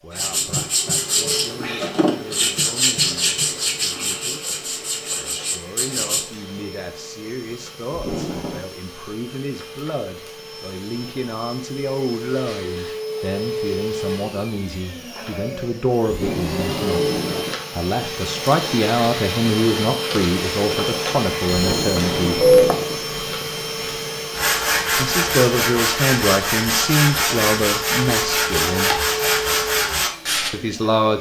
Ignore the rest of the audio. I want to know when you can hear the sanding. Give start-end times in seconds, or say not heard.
0.1-6.2, 24.4-30.5.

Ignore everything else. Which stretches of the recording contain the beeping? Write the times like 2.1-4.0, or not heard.
21.4-22.8.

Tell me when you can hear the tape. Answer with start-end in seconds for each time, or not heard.
7.9-8.7, 16.1-17.6, 21.5-23.1.